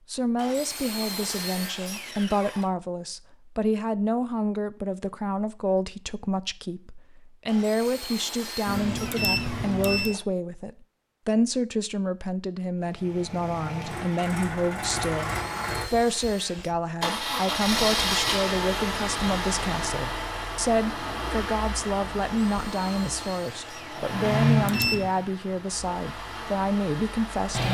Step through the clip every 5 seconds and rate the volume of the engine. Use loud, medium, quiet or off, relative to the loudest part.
off, off, medium, loud, loud, medium.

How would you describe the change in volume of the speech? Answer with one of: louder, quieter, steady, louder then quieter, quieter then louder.
steady.